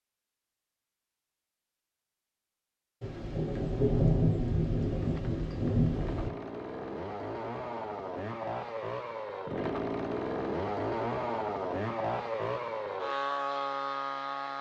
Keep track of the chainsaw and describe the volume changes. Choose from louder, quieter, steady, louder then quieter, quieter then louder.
louder.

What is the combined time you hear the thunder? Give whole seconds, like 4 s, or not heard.
3 s.